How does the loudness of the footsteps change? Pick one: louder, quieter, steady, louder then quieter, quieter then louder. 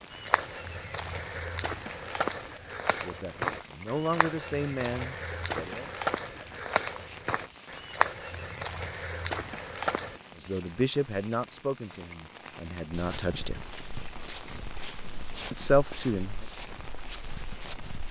quieter.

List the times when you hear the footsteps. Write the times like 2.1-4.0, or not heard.
0.1-10.2, 12.9-18.0.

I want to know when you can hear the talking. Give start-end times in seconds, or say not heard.
3.0-5.9, 10.4-13.6, 15.5-16.4.